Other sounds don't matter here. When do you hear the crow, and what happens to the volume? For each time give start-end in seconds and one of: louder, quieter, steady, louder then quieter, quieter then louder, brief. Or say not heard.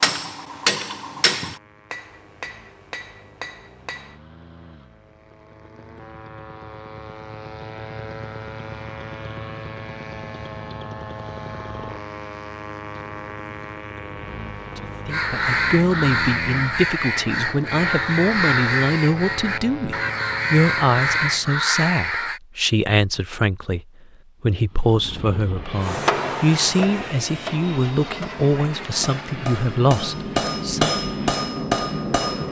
15.1-22.4 steady.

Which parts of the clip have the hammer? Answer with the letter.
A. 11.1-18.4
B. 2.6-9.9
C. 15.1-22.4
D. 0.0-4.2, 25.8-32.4
D.